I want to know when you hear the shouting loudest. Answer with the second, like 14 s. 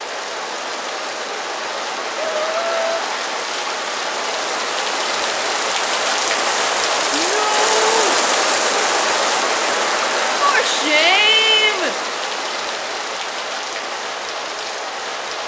11 s.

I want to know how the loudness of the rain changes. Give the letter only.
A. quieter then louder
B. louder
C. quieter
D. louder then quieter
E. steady
D.